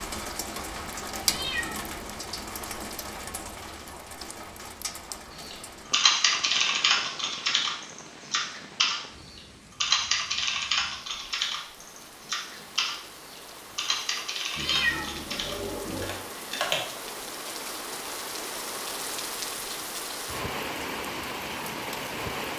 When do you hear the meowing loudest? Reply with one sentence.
The loudest moment of the meowing is at 15 seconds.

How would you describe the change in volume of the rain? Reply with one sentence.
The volume of the rain goes down, then up.